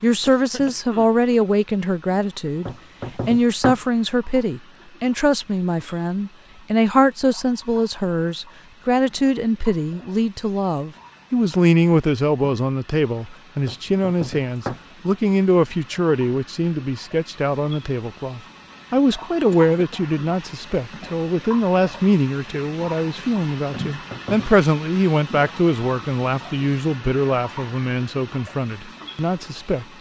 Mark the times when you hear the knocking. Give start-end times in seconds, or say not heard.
2.6-3.8, 13.7-14.8, 23.7-24.5.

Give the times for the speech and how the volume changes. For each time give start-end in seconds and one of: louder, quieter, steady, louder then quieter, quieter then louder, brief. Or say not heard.
0.0-29.9 steady.